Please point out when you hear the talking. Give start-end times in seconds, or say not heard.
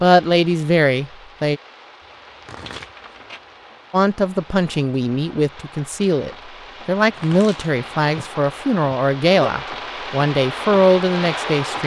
0.0-1.6, 3.9-11.8.